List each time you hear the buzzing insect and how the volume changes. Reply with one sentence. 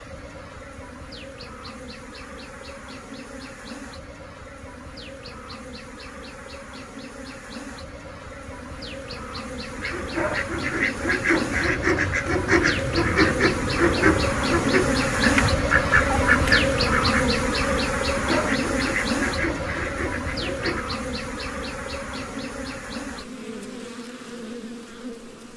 You can hear the buzzing insect from 0.0 to 25.5 s, getting louder then quieter.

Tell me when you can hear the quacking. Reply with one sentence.
The quacking can be heard from 9.8 to 20.9 s.